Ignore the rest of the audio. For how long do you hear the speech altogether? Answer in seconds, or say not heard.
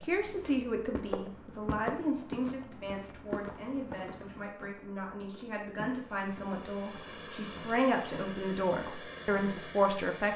10 s.